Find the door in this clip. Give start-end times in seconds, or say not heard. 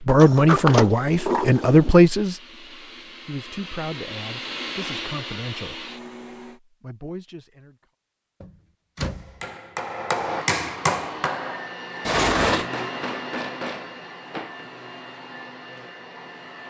0.1-1.9, 8.4-9.4, 12.1-12.7.